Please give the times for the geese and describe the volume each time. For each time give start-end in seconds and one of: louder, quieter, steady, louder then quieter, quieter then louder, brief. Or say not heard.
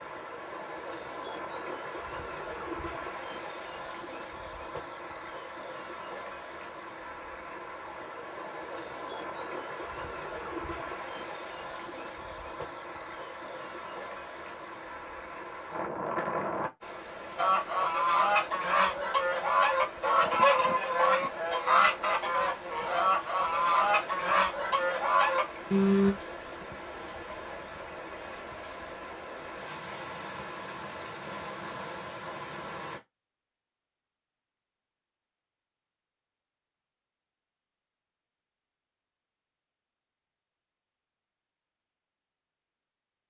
17.4-26.1 steady.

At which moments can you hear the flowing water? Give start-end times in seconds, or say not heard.
0.0-33.0.